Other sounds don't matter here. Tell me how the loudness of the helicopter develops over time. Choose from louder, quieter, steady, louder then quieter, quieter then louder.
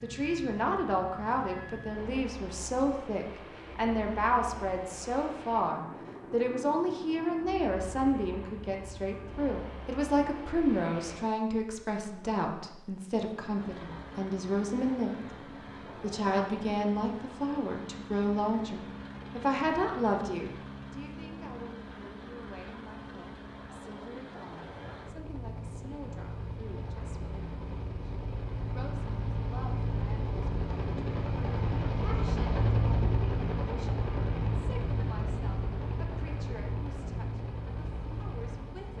louder.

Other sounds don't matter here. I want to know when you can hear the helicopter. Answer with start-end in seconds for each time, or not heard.
0.0-38.9.